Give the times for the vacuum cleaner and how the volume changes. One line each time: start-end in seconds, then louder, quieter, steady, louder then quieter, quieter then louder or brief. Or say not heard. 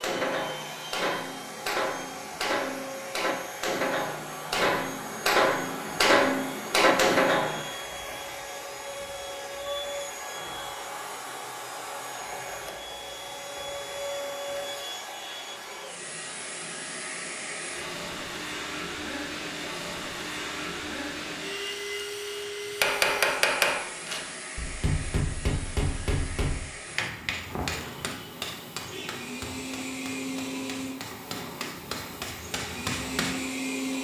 0.0-34.0 steady.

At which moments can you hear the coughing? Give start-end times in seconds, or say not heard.
not heard.